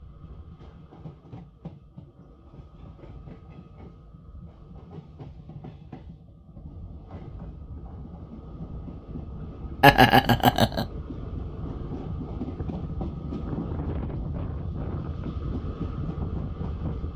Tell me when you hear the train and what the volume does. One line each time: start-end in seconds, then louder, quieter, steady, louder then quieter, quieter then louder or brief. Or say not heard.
0.0-17.1 louder.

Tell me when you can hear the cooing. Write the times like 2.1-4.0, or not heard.
not heard.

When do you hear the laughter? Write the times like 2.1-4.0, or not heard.
9.8-10.8.